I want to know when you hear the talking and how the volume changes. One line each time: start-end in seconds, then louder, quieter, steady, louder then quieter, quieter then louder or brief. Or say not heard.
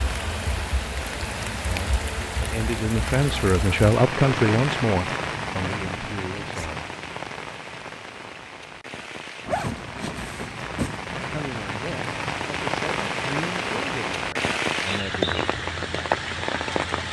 1.6-6.8 louder then quieter
11.2-15.4 steady.